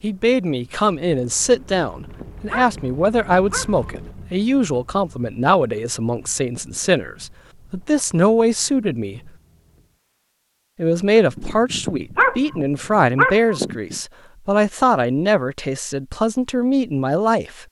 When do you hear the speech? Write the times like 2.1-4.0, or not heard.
0.0-9.3, 10.8-17.6.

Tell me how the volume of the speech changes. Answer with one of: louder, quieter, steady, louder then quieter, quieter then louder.
steady.